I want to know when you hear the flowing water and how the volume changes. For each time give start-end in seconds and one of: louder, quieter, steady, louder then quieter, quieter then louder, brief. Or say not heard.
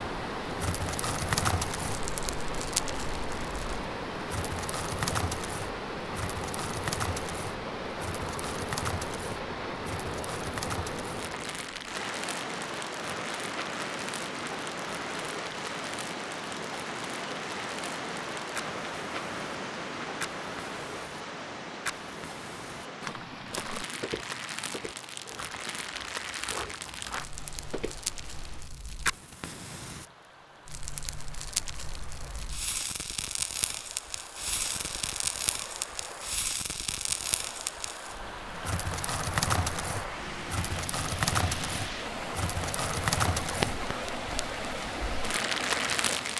0.0-46.3 quieter then louder.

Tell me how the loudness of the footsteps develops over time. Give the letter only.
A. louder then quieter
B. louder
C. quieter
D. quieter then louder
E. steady
D.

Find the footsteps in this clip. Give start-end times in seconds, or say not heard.
23.0-27.9.